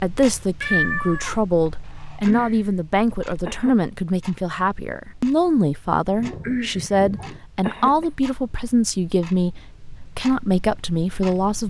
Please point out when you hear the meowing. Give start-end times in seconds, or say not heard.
0.6-1.4, 6.2-7.4.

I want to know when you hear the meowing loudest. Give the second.
1 s.